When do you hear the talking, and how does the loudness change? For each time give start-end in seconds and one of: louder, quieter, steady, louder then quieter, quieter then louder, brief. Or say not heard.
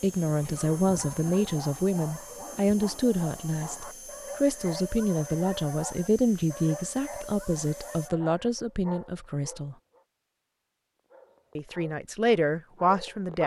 0.0-9.8 steady
11.6-13.4 brief.